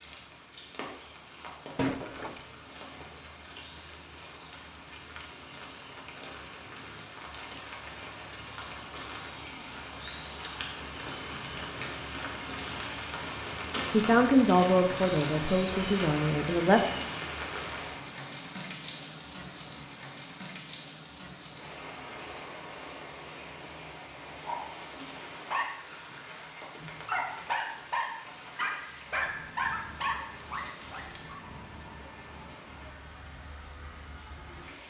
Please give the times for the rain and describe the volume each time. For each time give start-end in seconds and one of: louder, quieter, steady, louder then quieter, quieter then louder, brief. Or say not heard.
0.0-34.8 louder then quieter.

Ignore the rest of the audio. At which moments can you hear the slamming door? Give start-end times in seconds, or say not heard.
1.8-2.4.